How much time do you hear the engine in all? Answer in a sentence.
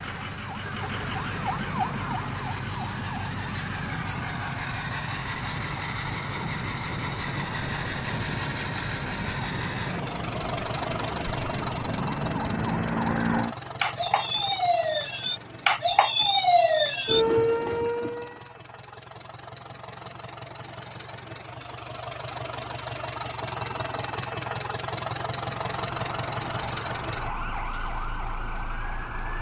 You can hear the engine for 29 seconds altogether.